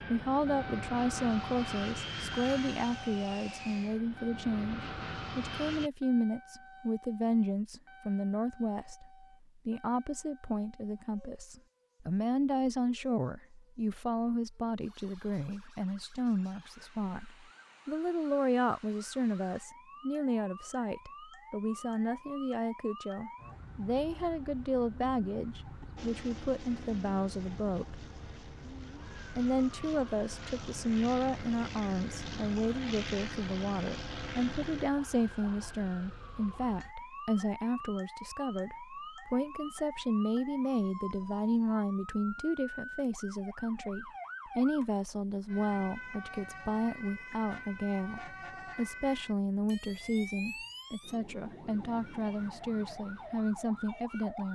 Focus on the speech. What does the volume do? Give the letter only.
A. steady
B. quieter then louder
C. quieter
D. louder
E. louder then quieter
A.